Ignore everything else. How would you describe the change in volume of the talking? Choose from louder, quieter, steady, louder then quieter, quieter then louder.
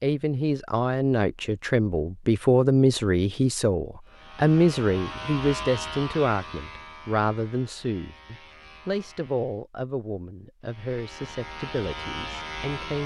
quieter.